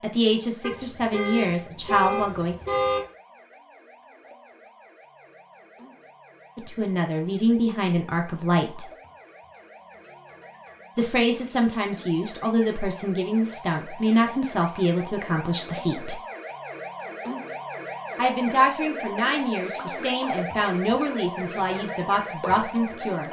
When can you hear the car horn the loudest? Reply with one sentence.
The loudest moment of the car horn is at 3 seconds.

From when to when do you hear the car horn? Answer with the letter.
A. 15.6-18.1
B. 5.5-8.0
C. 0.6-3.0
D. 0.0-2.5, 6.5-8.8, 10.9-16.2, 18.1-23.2
C.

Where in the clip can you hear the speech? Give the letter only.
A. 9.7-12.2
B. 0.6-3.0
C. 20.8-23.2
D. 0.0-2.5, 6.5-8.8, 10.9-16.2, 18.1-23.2
D.